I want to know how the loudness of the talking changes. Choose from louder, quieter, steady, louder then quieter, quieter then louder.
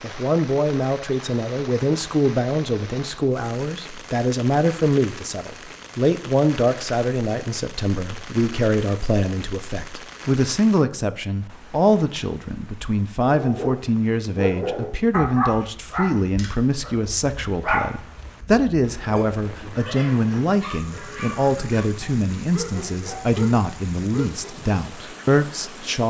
steady.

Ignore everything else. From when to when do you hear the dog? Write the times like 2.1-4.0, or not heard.
13.2-24.5.